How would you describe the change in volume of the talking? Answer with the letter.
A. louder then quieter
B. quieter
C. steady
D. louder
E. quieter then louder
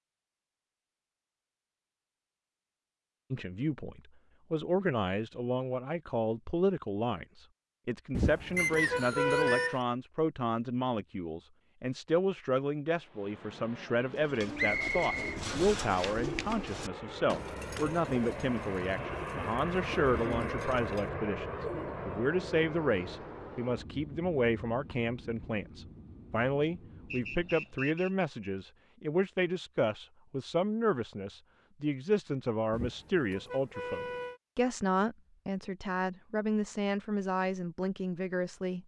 C.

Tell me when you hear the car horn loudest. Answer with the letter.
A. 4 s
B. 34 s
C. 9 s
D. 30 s
C.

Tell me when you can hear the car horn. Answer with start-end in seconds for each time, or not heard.
8.1-9.8, 32.7-34.4.